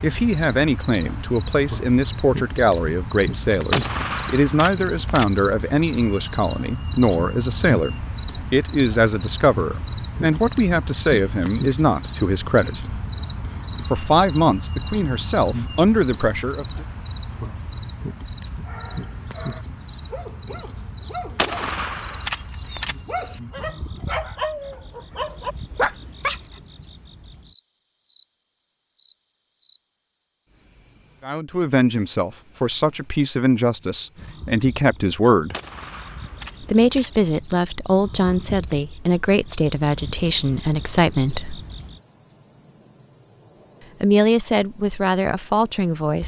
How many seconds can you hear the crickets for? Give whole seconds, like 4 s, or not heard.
46 s.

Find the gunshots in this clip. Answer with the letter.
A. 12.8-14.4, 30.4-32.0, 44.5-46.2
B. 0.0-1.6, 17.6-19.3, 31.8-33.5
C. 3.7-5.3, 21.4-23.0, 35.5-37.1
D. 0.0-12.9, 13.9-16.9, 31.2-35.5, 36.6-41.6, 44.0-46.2
C.